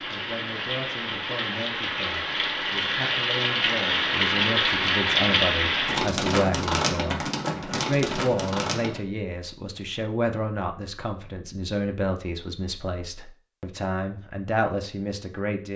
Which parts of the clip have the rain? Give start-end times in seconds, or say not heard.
0.0-9.0.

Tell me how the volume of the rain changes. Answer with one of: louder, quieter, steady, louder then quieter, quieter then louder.
louder then quieter.